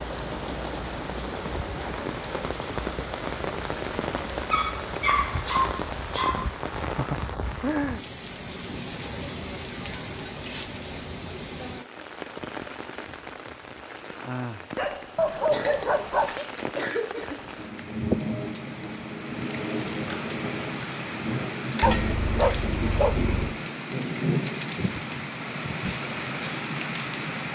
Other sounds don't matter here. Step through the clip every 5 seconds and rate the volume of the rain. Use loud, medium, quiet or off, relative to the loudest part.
loud, loud, medium, loud, loud, loud.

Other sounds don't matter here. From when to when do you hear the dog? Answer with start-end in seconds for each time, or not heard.
4.5-6.5, 14.8-16.4, 21.8-23.6.